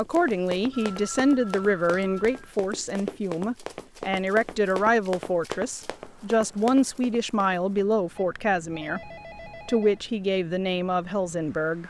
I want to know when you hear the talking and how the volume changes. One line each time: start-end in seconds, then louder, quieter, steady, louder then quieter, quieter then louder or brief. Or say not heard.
0.0-11.8 steady.